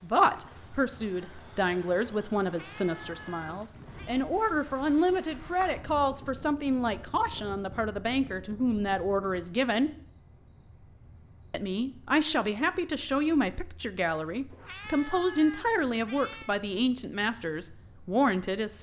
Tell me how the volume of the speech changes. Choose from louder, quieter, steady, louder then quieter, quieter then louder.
steady.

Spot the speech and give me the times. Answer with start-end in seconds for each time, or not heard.
0.0-9.9, 11.5-18.7.